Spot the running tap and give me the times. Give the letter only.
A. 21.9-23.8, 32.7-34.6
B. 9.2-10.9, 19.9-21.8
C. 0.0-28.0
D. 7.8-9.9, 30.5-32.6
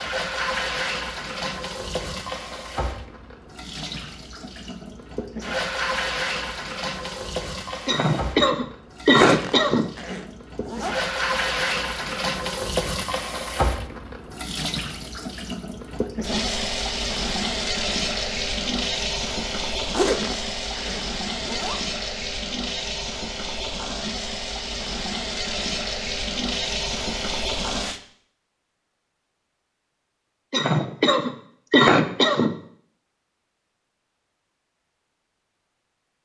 C.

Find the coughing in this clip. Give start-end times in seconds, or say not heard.
7.8-9.9, 30.5-32.6.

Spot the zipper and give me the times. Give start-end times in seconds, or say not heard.
9.2-10.9, 19.9-21.8.